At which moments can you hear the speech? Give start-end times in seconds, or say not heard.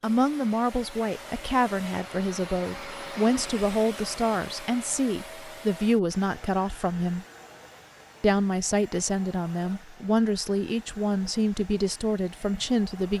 0.0-7.2, 8.2-13.1.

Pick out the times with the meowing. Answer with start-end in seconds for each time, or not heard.
not heard.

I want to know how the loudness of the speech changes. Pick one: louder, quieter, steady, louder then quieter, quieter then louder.
steady.